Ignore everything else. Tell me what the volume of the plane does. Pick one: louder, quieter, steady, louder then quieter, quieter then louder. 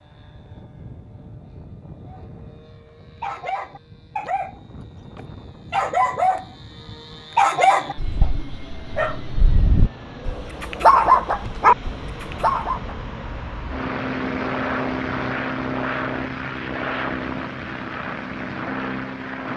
louder.